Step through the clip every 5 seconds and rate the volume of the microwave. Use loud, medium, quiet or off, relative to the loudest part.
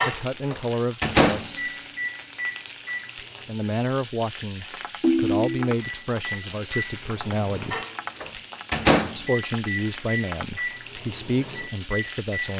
loud, loud, medium.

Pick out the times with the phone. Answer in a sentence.
The phone can be heard from 5.0 to 5.8 s.